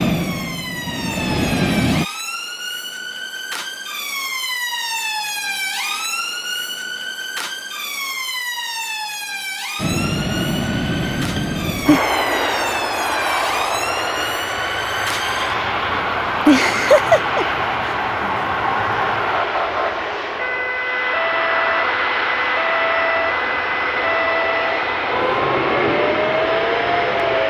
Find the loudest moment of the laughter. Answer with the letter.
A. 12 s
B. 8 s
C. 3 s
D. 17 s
D.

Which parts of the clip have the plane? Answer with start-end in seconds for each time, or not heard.
0.0-2.0, 9.8-27.4.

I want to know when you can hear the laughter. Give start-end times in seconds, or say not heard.
11.3-12.0, 15.9-17.9.